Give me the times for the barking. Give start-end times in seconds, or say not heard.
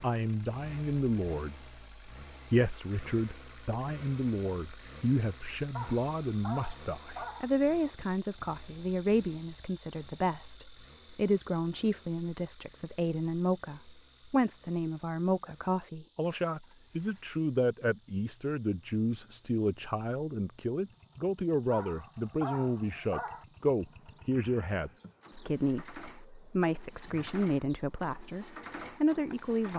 5.8-7.5, 21.7-23.4.